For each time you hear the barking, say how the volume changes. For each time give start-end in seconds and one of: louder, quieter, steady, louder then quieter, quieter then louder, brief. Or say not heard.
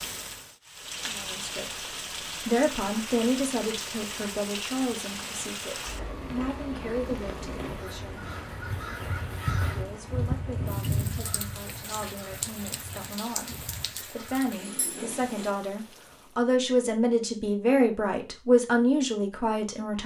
not heard.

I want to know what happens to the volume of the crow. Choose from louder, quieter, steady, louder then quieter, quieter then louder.
louder then quieter.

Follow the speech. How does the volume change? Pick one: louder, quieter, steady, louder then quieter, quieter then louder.
quieter then louder.